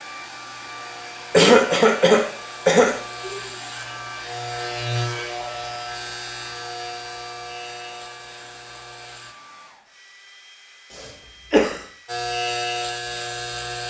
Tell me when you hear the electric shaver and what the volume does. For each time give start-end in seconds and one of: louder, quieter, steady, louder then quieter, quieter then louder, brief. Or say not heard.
0.0-9.3 louder then quieter
12.1-13.8 brief.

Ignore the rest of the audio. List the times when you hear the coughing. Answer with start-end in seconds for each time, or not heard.
1.3-3.4, 10.9-11.8.